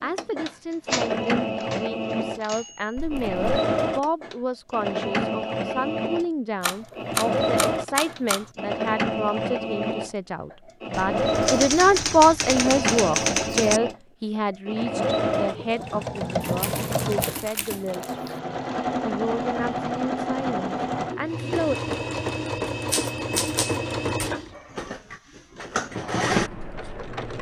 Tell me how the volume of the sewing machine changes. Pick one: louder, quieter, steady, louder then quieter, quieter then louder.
steady.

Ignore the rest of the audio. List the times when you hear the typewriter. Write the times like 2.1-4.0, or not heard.
0.9-2.9, 6.6-8.5, 10.9-13.8, 16.4-18.4, 22.9-24.4.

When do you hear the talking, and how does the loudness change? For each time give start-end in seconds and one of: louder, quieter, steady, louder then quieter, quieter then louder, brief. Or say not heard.
0.0-21.8 louder then quieter.